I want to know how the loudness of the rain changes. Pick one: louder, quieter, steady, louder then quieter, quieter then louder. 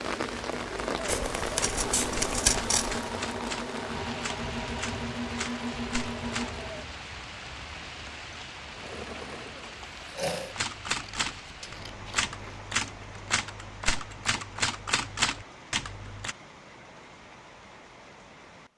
quieter.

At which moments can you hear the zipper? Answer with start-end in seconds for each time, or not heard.
not heard.